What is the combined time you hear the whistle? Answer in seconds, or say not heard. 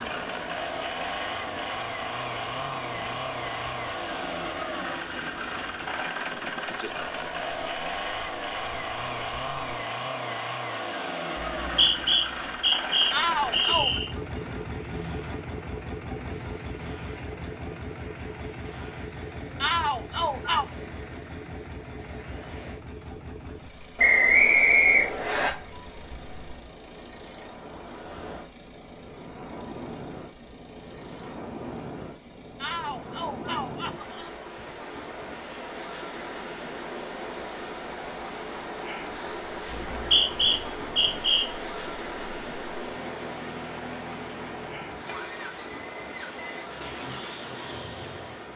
6 s.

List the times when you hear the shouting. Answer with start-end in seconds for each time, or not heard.
13.1-14.0, 19.6-20.6, 32.6-34.3.